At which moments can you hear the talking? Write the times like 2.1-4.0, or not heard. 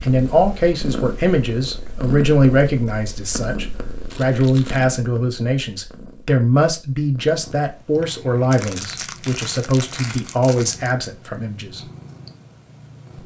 0.0-11.8.